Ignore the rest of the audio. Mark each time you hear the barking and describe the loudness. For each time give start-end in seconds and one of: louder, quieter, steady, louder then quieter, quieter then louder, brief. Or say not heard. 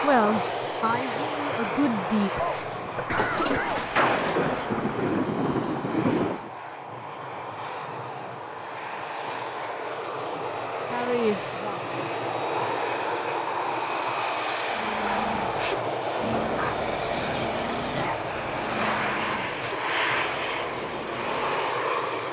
14.7-21.8 quieter.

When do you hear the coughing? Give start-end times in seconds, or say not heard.
2.4-3.9.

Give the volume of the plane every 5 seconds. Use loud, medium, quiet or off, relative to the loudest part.
loud, medium, loud, loud, loud.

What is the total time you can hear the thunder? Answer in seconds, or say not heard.
3 s.